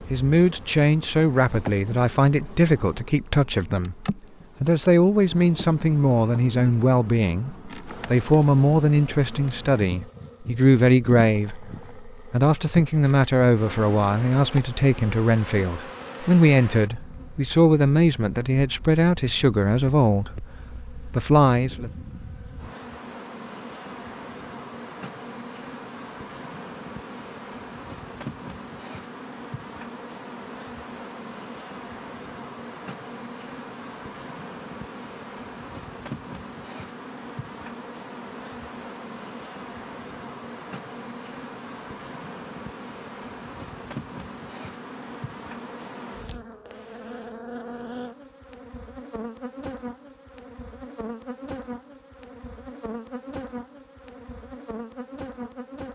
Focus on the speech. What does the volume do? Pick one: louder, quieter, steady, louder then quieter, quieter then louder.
steady.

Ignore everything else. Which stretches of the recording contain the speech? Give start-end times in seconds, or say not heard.
0.1-21.9.